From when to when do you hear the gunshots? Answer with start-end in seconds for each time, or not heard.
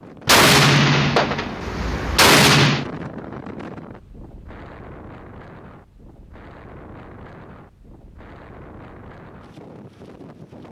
0.2-2.9.